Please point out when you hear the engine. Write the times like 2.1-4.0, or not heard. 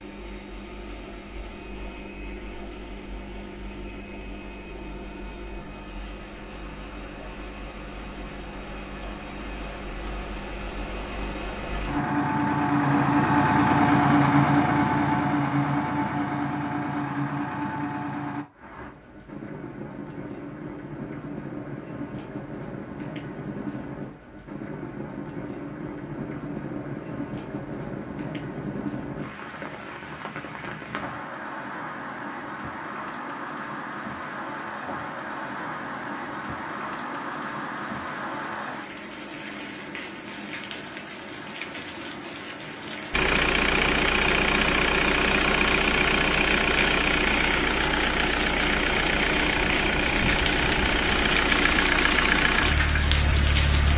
0.0-18.4, 43.1-53.9.